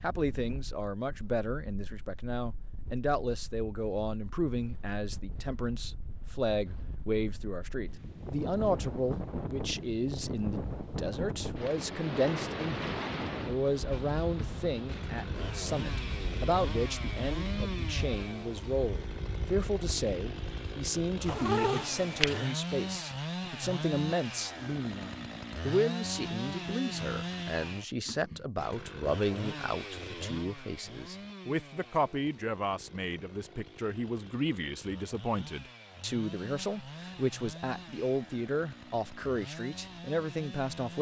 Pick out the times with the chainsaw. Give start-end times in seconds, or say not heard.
13.9-40.9.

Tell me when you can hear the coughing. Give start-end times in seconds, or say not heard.
not heard.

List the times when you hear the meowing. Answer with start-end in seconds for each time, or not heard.
21.2-22.6.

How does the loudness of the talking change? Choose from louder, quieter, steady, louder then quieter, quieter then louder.
steady.